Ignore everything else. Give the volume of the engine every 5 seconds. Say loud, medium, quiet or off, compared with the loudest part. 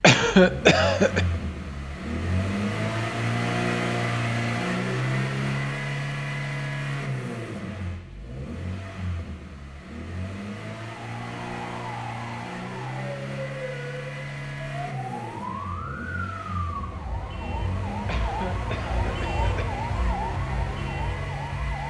loud, loud, medium, medium, medium.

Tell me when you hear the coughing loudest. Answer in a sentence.
The volume of the coughing peaks at 1 second.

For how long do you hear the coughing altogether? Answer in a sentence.
The coughing can be heard for 3 seconds in total.